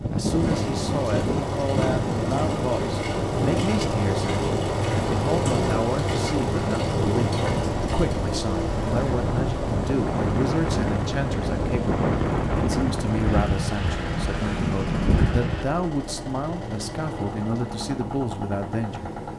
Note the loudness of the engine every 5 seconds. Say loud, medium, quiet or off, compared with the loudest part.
loud, loud, medium, medium.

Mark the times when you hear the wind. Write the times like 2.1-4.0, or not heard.
0.0-15.7.